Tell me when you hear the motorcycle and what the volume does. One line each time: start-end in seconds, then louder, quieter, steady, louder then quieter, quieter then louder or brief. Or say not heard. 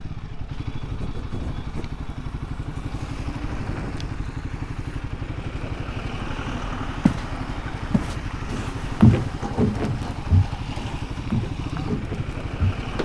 0.0-13.0 steady.